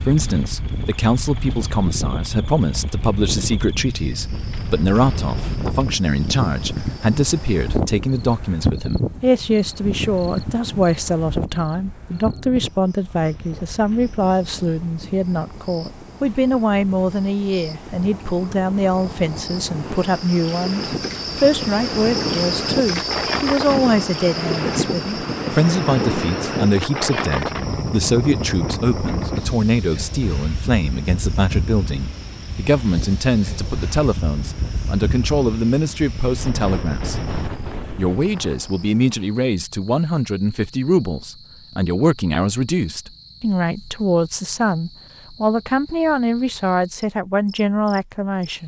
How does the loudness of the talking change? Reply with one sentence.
The volume of the talking stays about the same.